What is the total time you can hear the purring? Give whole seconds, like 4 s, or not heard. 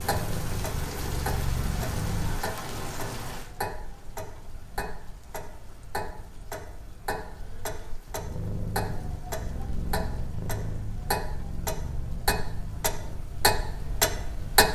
9 s.